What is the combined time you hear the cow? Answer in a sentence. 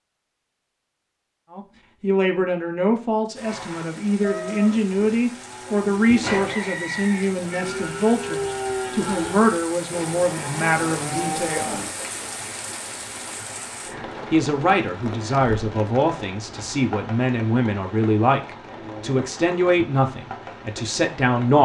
The cow can be heard for 9 seconds in total.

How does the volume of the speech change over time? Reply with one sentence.
The loudness of the speech stays about the same.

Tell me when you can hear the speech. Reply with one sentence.
The speech can be heard from 1.5 to 11.8 s and from 14.3 to 21.6 s.